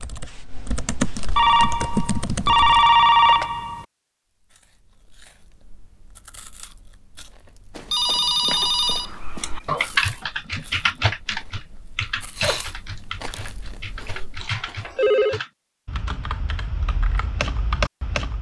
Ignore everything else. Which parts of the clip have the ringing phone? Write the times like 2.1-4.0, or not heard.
1.4-3.9, 7.8-10.2, 14.2-15.4.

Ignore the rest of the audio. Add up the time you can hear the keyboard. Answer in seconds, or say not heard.
13 s.